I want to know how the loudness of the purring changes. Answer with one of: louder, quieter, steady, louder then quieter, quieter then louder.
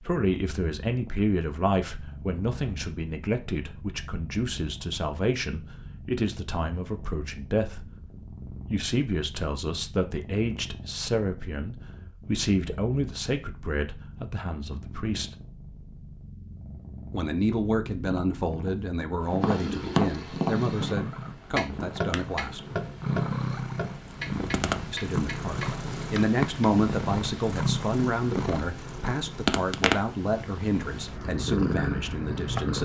louder.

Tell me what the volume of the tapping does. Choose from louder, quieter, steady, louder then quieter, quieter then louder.
quieter.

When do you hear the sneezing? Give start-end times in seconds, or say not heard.
not heard.